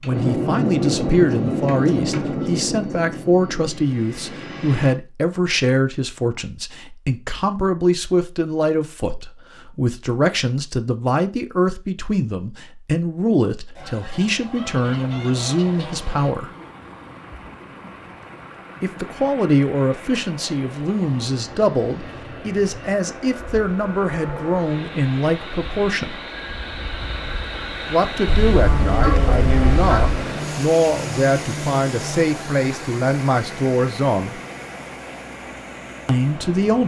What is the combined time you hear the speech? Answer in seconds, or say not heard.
31 s.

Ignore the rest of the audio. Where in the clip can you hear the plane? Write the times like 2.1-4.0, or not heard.
0.0-5.0, 19.0-36.5.